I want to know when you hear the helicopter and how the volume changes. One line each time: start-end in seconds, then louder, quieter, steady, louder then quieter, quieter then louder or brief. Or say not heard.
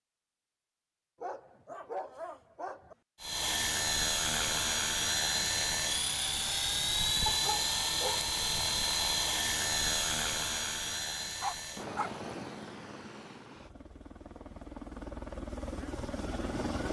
3.2-16.8 quieter.